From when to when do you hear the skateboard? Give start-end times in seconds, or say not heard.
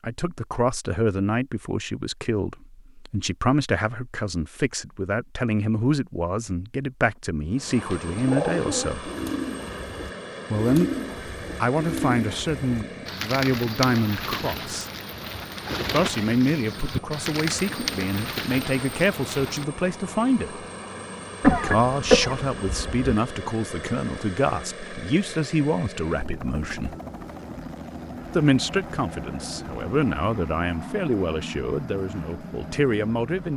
not heard.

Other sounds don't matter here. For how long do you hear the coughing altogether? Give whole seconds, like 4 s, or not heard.
2 s.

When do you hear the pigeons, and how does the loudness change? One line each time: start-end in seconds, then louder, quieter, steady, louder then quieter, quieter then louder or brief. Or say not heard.
7.9-19.6 steady.